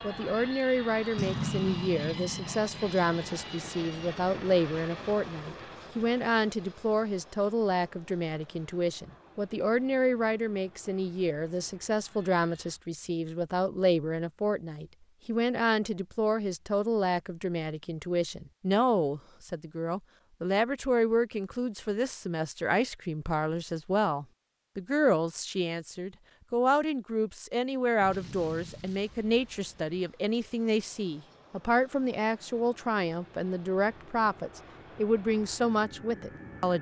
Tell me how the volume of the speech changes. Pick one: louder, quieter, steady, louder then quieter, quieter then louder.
steady.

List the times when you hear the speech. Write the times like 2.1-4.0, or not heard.
0.0-36.7.